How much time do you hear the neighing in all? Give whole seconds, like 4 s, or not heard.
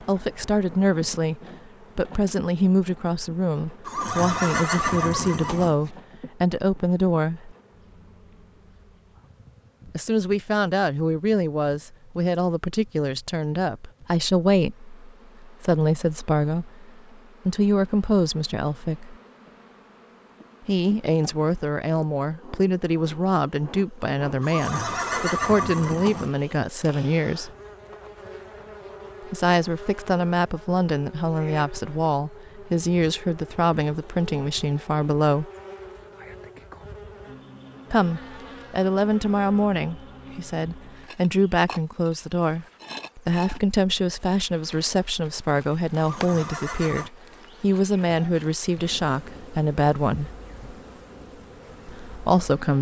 5 s.